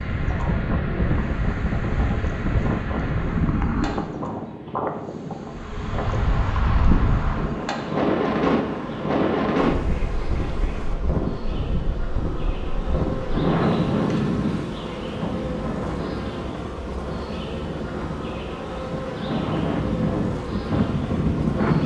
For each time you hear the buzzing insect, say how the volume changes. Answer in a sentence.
The buzzing insect can be heard from 0.0 to 21.8 s, getting louder.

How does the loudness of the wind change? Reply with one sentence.
The volume of the wind stays about the same.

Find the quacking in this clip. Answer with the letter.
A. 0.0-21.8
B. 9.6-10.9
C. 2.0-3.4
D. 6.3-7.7
B.